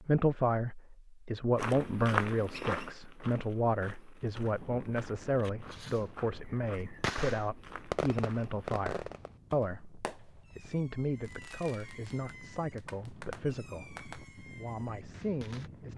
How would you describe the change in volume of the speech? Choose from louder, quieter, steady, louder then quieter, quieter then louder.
quieter.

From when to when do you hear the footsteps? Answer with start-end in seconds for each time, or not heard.
1.6-8.7.